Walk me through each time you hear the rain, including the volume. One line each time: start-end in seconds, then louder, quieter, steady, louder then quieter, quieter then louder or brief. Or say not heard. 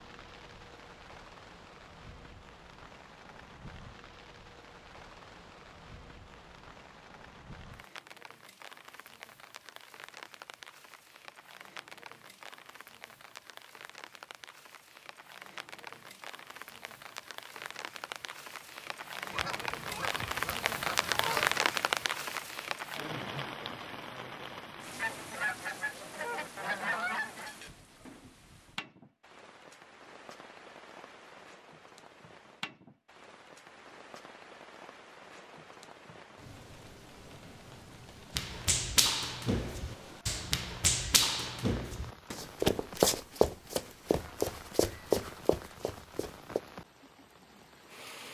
0.0-48.2 louder then quieter.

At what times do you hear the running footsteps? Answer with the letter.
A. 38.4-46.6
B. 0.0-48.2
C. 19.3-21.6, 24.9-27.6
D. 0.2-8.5
A.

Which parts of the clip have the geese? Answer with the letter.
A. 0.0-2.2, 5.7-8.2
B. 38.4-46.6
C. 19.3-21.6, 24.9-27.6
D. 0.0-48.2
C.